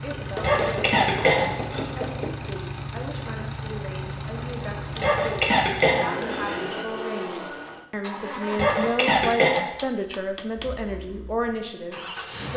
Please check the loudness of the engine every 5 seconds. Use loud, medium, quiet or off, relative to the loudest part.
loud, loud, medium.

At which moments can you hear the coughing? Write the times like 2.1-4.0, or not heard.
0.3-1.9, 5.0-6.5, 8.5-9.7.